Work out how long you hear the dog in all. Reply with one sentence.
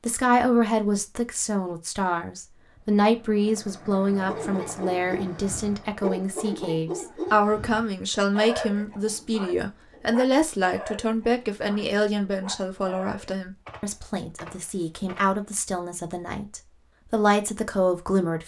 The dog can be heard for 9 seconds in total.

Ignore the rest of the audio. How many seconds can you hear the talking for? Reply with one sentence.
The talking can be heard for 18 seconds in total.